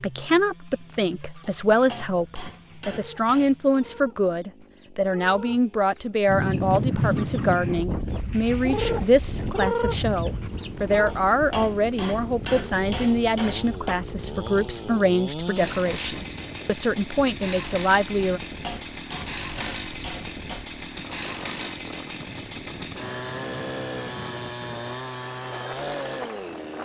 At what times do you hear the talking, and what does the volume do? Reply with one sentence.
The talking can be heard from 0.0 to 18.4 s, at a steady volume.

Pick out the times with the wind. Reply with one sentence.
You can hear the wind from 6.2 to 26.8 s.